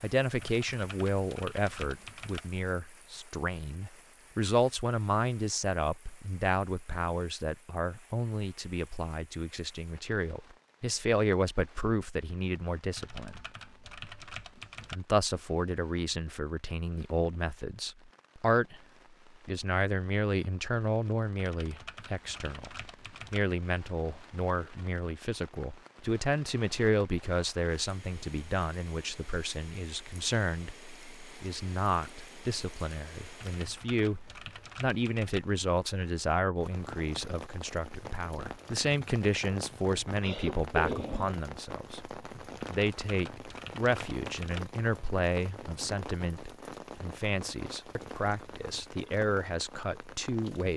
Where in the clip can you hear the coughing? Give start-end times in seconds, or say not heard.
40.0-41.4.